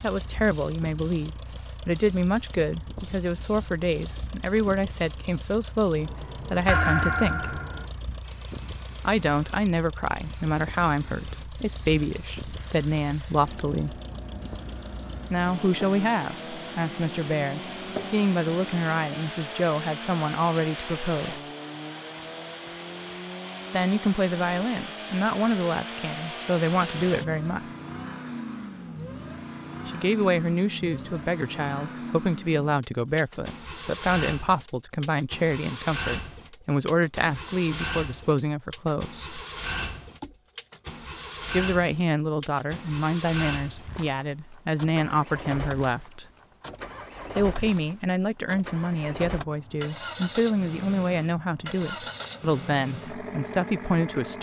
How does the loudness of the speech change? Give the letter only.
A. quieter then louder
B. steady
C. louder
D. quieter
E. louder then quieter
B.